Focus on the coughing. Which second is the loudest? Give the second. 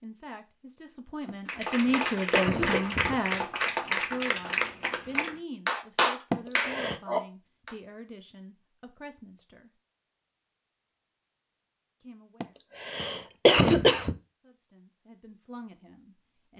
14 s.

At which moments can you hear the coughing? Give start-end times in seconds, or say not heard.
1.2-3.4, 6.3-7.0, 12.4-14.2.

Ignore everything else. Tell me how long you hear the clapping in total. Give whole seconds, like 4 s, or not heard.
6 s.